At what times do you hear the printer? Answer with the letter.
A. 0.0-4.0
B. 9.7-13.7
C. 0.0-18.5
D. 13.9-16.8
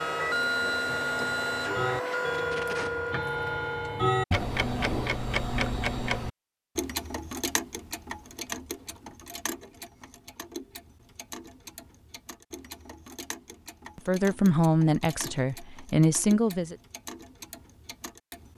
A.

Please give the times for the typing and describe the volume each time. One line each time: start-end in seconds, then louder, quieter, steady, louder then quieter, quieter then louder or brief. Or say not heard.
not heard.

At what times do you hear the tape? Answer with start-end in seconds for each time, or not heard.
2.0-3.0.